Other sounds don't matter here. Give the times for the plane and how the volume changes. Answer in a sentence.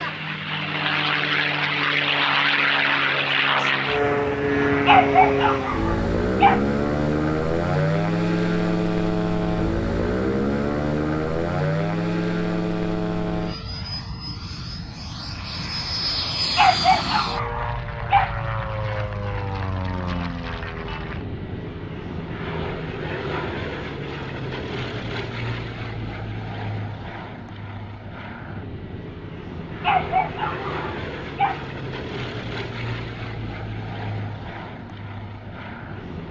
You can hear the plane from 0.0 to 36.2 s, getting quieter.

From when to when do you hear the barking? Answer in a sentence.
The barking can be heard from 4.8 to 6.7 s, from 16.6 to 18.4 s and from 29.8 to 31.6 s.